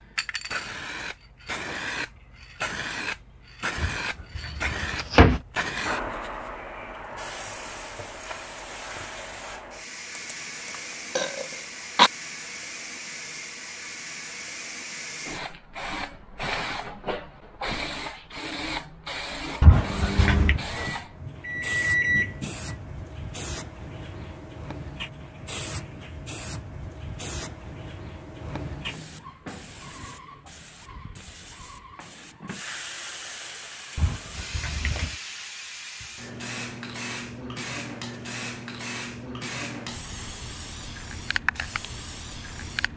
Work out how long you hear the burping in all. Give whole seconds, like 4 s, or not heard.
2 s.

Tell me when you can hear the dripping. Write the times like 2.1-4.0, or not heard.
not heard.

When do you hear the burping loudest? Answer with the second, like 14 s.
12 s.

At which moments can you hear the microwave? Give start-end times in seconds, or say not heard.
19.8-22.6.